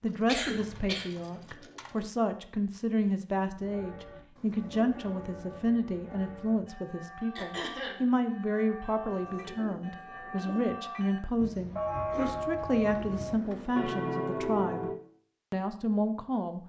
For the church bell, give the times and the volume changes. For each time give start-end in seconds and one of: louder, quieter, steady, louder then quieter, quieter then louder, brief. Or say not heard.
3.5-15.0 louder.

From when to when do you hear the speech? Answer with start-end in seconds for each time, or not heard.
0.0-14.9, 15.5-16.6.